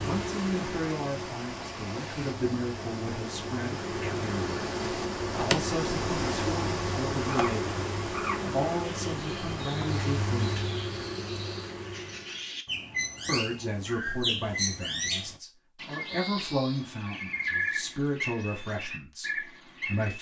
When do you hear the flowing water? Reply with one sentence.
You can hear the flowing water from 0.0 to 10.8 s.